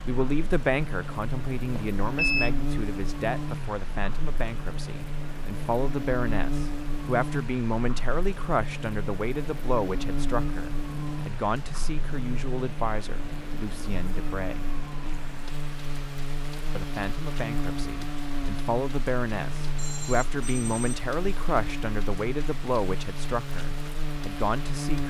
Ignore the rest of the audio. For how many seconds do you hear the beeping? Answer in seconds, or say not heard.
2 s.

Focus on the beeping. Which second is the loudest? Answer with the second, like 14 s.
2 s.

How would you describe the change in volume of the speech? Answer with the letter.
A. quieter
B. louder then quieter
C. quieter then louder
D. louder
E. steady
E.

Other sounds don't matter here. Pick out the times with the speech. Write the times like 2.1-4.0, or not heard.
0.1-14.7, 16.8-25.0.